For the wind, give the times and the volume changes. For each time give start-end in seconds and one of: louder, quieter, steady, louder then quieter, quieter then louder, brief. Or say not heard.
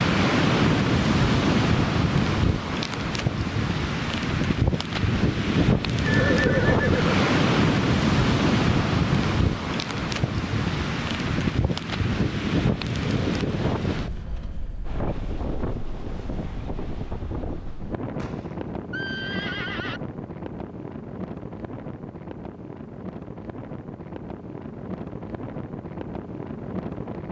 0.0-27.2 quieter.